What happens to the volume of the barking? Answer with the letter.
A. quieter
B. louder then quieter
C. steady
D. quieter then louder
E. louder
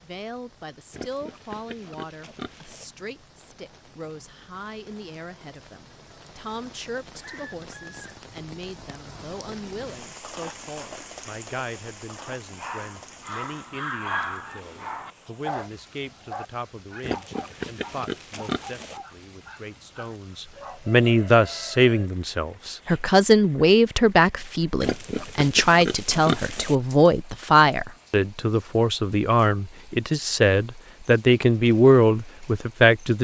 A.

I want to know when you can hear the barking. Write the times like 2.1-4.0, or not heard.
12.3-20.8.